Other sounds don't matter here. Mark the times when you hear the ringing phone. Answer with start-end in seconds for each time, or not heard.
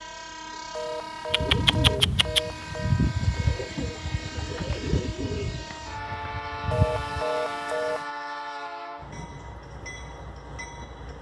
0.7-3.0, 6.7-8.1.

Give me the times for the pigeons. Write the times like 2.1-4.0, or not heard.
1.3-7.2.